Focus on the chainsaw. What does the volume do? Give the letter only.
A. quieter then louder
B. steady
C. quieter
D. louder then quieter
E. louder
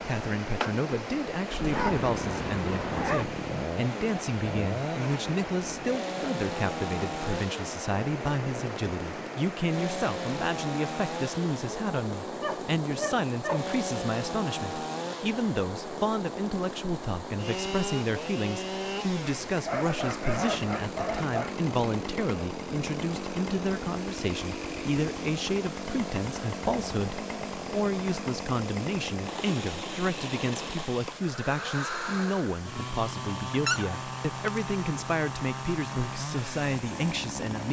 B.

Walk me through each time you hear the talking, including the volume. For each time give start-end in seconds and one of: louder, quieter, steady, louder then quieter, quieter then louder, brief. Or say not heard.
0.1-37.6 steady.